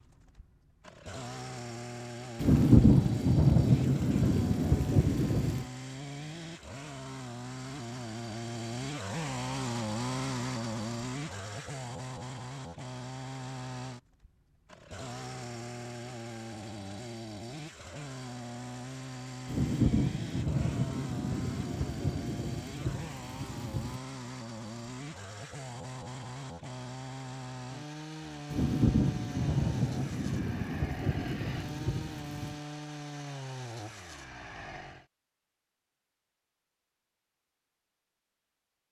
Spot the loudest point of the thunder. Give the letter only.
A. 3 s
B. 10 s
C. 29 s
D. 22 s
A.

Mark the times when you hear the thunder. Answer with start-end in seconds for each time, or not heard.
2.4-5.7, 19.4-24.0, 28.5-32.5.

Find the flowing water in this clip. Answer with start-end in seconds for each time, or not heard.
not heard.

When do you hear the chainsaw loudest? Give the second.
10 s.